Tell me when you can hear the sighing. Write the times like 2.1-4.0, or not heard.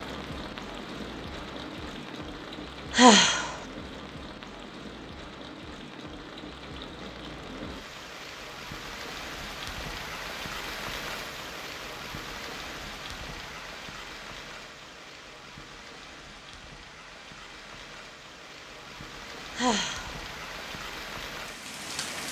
2.9-3.5, 19.6-20.1.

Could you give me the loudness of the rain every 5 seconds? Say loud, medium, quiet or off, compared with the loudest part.
loud, loud, loud, medium, loud.